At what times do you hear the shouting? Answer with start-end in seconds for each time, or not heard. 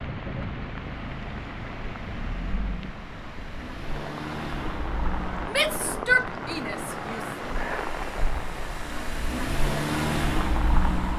5.5-7.2.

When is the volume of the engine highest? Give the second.
10 s.